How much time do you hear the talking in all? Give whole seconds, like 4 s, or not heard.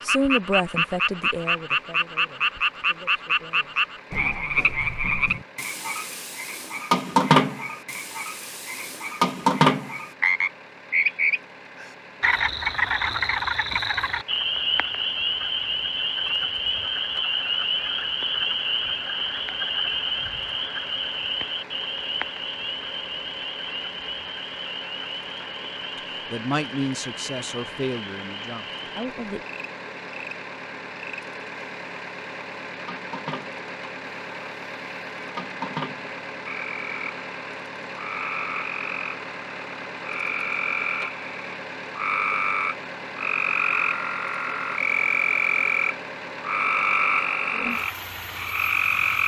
8 s.